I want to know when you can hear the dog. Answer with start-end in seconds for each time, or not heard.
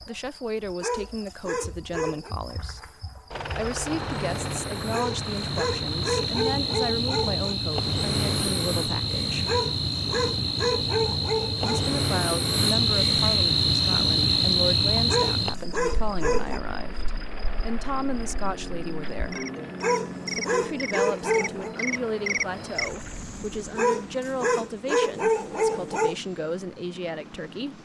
0.8-2.4, 4.9-7.5, 9.4-11.8, 15.1-16.6, 19.8-21.8, 23.8-26.1.